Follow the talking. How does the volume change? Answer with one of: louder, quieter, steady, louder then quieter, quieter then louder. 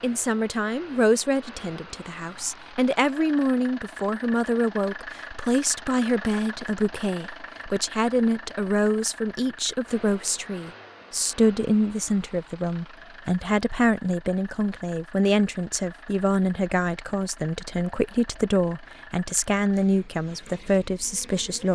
steady.